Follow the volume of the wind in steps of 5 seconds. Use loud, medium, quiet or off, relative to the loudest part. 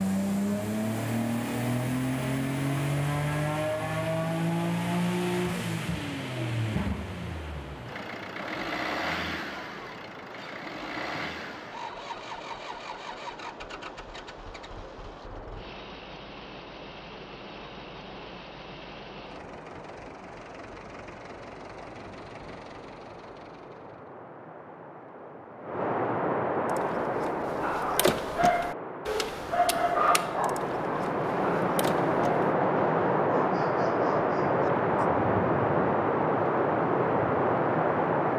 quiet, quiet, quiet, quiet, quiet, medium, loud, loud.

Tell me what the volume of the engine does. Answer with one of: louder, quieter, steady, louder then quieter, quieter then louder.
quieter.